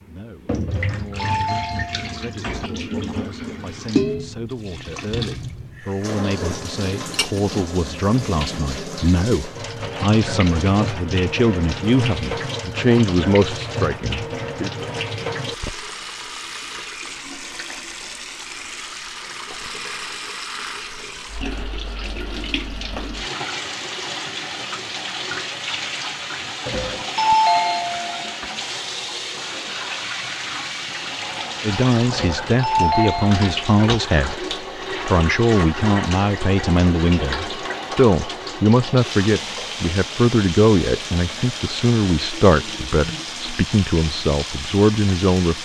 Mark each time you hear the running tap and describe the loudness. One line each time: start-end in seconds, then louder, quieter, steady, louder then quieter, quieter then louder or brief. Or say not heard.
0.0-45.5 steady.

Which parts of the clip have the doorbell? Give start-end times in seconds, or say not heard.
0.7-2.7, 26.6-28.4, 32.1-34.0.